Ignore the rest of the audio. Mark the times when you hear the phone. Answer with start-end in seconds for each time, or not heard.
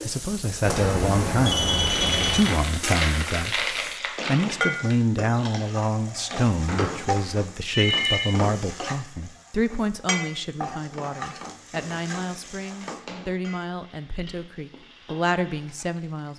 0.6-2.5, 6.7-8.3, 12.2-13.3.